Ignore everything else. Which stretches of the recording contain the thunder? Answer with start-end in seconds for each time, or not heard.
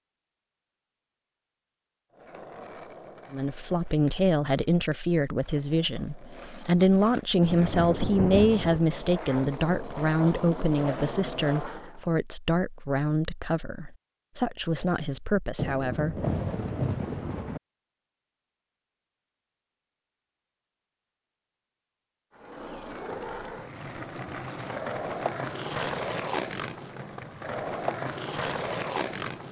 7.4-8.8, 15.6-17.6.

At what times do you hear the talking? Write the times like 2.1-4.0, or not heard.
3.3-16.2.